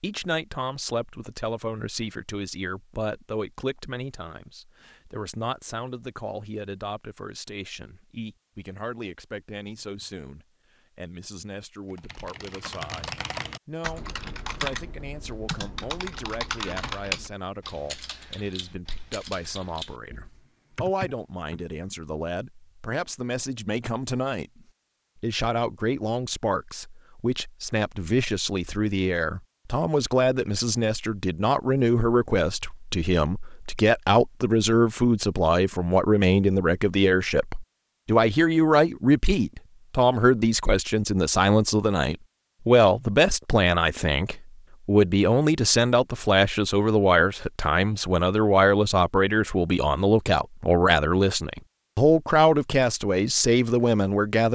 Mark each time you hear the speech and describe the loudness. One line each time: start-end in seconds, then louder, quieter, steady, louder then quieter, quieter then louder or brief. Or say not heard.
0.0-54.5 louder.